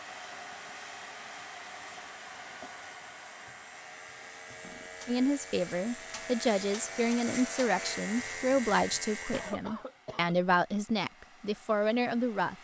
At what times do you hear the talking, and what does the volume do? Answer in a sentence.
You can hear the talking from 5.0 to 12.5 s, at a steady volume.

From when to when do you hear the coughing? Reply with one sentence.
You can hear the coughing from 1.9 to 2.7 s, from 4.6 to 5.2 s and from 9.3 to 10.3 s.